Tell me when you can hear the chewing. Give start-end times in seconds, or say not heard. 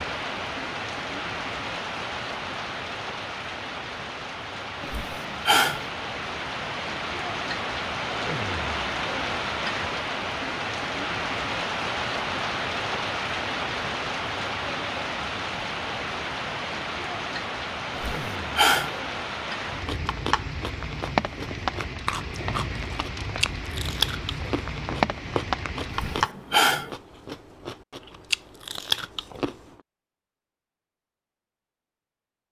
19.6-29.7.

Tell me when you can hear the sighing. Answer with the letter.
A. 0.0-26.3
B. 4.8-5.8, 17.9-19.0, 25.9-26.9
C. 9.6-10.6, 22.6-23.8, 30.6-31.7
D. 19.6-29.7
B.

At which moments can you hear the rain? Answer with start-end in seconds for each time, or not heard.
0.0-26.3.